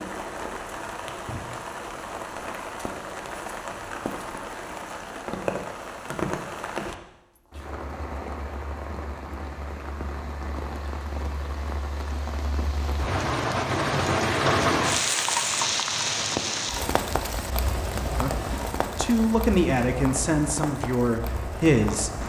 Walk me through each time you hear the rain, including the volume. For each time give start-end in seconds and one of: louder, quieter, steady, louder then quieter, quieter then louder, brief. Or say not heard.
0.0-22.2 louder then quieter.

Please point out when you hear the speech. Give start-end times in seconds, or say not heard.
18.1-22.2.